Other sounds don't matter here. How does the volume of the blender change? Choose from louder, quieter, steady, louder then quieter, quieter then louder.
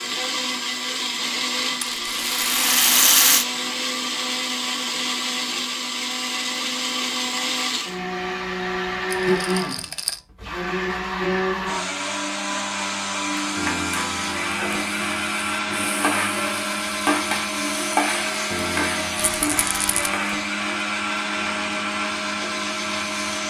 steady.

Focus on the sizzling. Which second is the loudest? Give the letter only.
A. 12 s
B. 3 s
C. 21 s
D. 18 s
D.